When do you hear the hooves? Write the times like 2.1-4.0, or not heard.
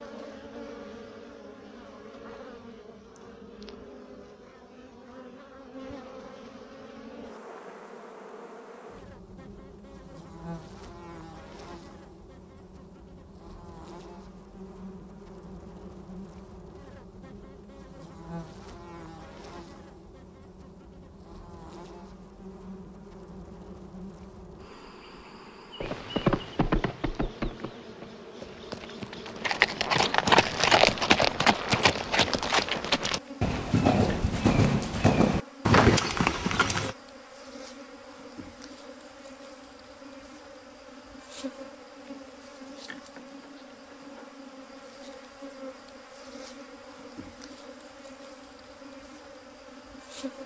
25.8-37.0.